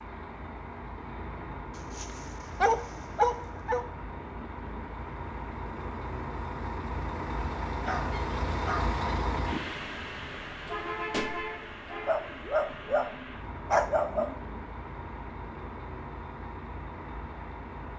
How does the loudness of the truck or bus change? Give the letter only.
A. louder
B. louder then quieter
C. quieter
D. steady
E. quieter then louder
B.